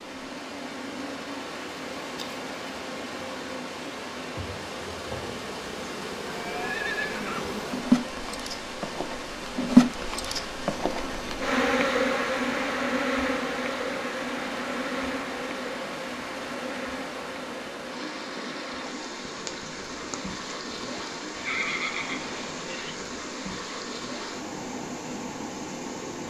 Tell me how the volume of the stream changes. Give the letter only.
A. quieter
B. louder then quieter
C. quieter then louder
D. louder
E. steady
E.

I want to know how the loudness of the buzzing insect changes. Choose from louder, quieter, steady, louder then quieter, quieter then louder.
louder then quieter.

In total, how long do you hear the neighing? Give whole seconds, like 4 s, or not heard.
3 s.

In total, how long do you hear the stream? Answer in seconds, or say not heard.
26 s.